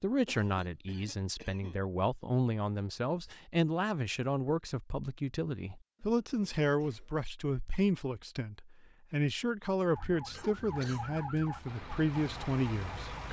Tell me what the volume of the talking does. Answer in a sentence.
The loudness of the talking stays about the same.